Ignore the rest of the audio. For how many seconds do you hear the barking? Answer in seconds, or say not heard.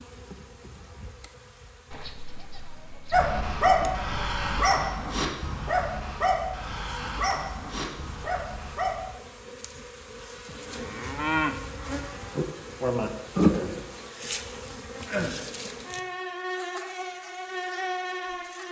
6 s.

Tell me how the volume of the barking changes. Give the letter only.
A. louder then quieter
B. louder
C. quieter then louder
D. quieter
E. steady
D.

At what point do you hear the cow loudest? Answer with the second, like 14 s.
11 s.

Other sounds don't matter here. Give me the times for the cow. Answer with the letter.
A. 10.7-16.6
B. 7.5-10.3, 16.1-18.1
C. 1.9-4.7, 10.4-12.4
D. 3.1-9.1
C.